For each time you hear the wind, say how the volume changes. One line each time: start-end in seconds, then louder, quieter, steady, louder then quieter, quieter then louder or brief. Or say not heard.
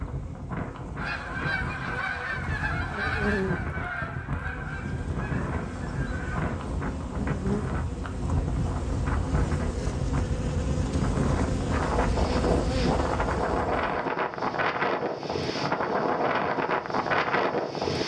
0.0-18.0 louder.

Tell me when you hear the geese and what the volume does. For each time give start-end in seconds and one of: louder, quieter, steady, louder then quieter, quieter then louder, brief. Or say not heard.
0.9-6.5 quieter.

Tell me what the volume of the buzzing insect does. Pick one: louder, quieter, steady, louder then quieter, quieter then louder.
louder.